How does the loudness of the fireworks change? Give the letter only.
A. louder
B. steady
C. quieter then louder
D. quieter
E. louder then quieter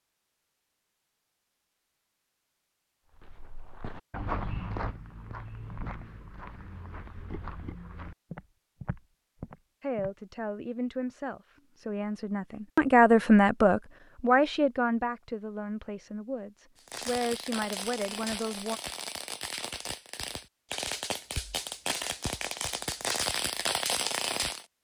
A.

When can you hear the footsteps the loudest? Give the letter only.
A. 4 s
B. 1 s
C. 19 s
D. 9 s
A.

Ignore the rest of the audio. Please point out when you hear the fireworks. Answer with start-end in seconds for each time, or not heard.
16.8-24.6.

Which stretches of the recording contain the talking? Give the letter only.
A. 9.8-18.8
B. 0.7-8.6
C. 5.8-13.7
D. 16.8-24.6
A.